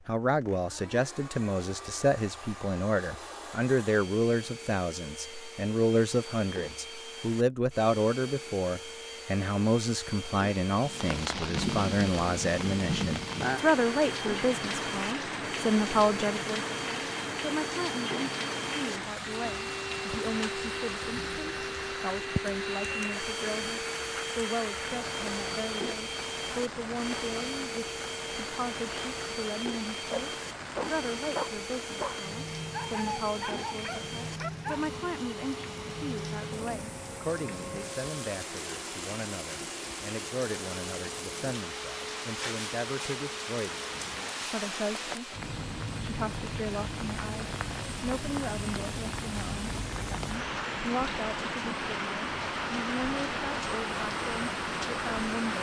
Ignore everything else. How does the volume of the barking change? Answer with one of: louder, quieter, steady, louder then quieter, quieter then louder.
quieter.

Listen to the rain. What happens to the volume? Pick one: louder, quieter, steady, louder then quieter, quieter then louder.
quieter then louder.